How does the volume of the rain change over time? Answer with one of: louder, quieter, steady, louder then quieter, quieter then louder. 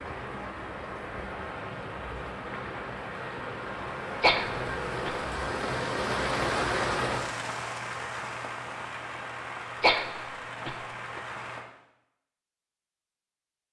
louder then quieter.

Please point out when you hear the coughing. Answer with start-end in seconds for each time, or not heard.
4.2-5.2, 9.8-11.2.